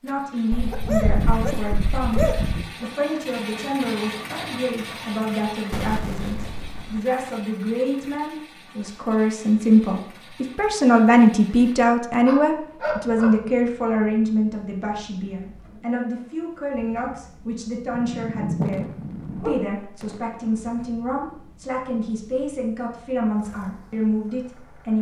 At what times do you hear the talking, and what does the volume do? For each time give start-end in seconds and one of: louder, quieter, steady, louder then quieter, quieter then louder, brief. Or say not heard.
0.0-24.9 louder then quieter.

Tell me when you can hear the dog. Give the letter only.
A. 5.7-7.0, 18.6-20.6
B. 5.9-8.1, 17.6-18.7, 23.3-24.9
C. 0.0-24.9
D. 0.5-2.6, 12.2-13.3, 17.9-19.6
D.